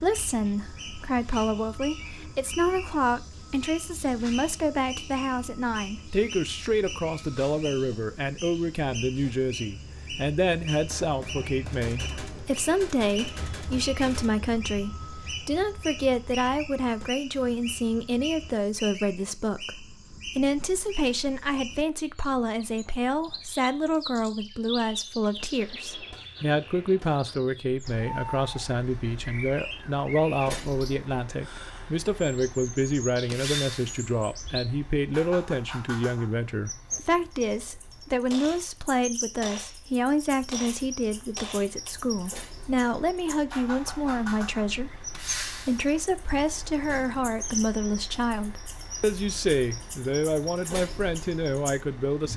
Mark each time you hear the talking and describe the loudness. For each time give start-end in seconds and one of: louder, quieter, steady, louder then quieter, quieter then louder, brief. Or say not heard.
0.0-52.3 steady.